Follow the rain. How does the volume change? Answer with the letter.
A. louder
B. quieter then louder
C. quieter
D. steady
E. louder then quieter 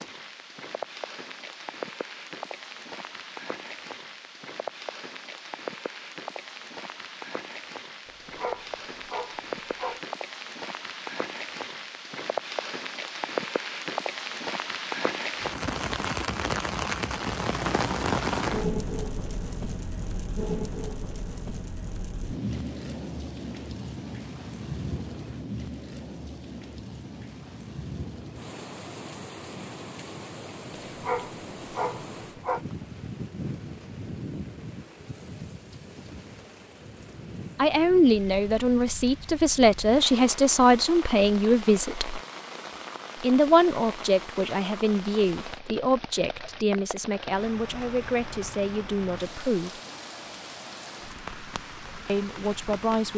E.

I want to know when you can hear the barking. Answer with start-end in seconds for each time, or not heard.
8.1-10.0, 30.9-32.6.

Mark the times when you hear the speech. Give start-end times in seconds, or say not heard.
37.5-42.2, 43.2-49.8, 52.0-53.1.